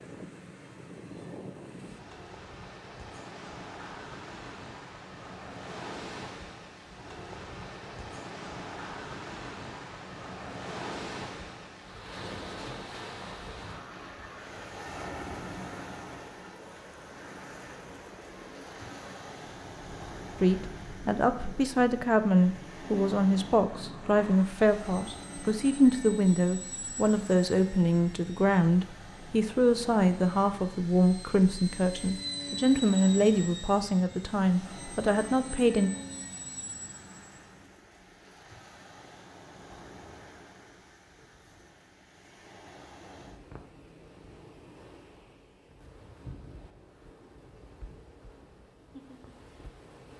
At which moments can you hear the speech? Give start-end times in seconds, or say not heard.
20.4-35.9.